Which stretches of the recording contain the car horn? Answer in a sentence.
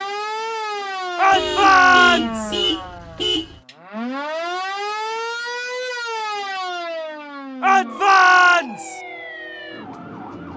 The car horn can be heard from 1.3 to 3.6 s.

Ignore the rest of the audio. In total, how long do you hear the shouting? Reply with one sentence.
You can hear the shouting for 3 seconds altogether.